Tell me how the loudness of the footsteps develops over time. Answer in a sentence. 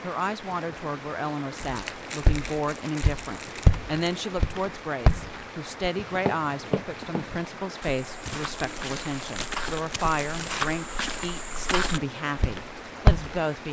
The volume of the footsteps goes down, then up.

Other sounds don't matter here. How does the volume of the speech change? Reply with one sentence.
The volume of the speech stays about the same.